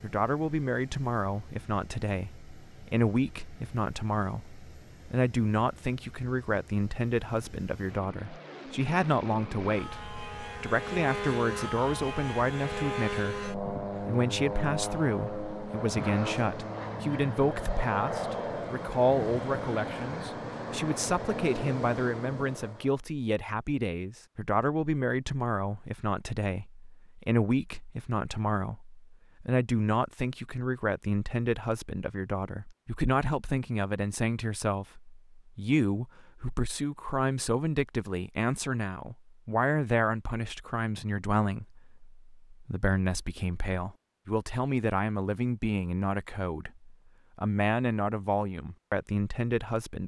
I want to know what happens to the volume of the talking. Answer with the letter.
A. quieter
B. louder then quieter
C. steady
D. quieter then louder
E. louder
C.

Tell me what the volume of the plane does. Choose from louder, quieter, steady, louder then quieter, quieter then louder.
louder.